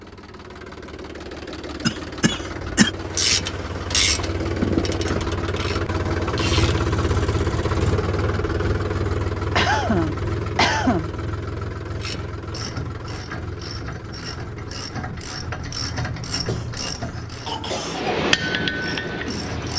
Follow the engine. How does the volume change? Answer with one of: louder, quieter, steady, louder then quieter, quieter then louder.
louder then quieter.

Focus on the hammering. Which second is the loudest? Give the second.
18 s.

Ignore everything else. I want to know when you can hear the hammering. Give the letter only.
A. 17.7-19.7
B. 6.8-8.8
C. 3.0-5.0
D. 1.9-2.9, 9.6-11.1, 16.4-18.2
A.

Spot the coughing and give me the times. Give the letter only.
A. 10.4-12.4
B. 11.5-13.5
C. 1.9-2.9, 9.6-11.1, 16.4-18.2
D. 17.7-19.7
C.